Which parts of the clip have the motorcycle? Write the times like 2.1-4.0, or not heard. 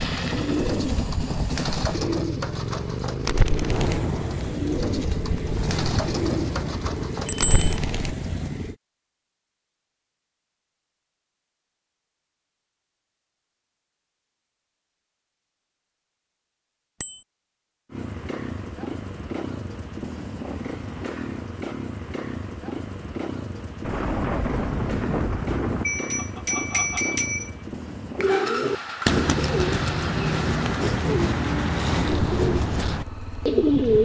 0.0-8.8, 17.9-34.0.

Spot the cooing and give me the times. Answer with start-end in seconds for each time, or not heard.
0.0-8.3, 28.1-34.0.